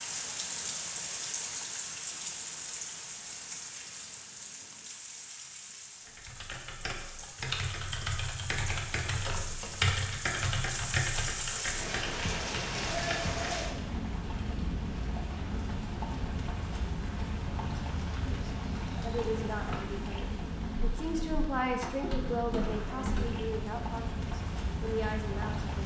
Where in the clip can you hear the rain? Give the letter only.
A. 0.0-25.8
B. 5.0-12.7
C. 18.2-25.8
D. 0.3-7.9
A.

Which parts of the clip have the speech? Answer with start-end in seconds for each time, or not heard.
18.2-25.8.